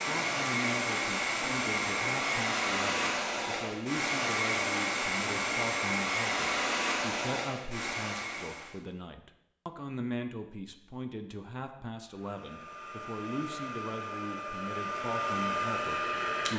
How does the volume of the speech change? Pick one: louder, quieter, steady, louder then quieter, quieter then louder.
steady.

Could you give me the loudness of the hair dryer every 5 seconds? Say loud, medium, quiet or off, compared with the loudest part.
loud, loud, medium, loud.